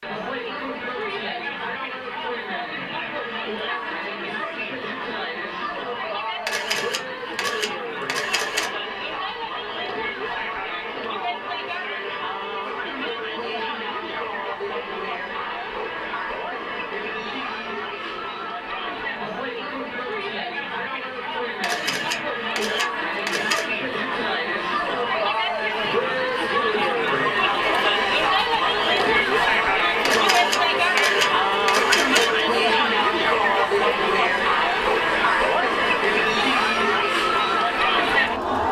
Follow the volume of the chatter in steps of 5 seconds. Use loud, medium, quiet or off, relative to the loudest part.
medium, medium, medium, medium, medium, loud, loud, loud.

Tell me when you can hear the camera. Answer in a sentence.
The camera can be heard from 6.5 to 8.7 s, from 21.6 to 23.7 s and from 30.1 to 32.5 s.